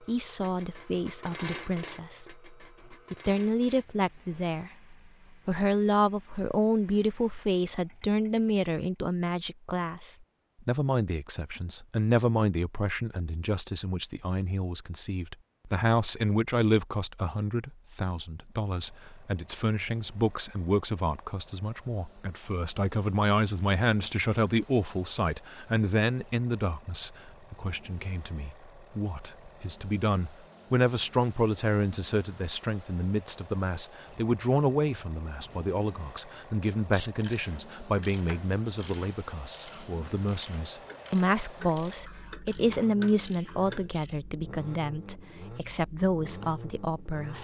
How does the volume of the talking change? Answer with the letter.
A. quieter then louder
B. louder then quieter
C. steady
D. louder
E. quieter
C.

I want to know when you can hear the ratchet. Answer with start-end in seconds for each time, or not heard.
36.9-44.1.